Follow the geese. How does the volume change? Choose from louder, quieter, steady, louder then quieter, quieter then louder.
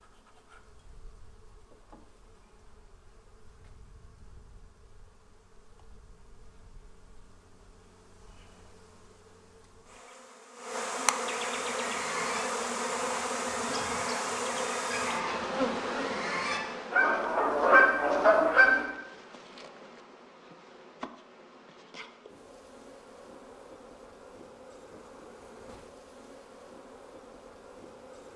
louder.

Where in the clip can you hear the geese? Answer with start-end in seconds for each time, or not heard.
11.6-18.9.